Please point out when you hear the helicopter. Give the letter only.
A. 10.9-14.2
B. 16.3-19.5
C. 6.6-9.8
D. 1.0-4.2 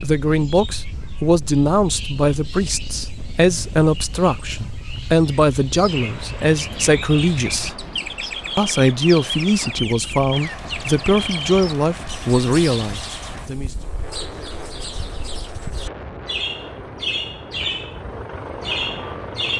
B.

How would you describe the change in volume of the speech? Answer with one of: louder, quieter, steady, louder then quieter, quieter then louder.
steady.